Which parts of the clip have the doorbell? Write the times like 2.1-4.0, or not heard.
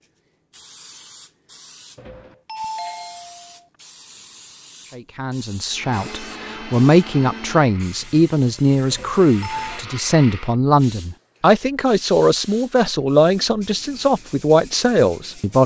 1.9-3.5, 8.9-9.8.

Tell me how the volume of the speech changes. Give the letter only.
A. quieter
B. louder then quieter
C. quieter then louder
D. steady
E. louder
D.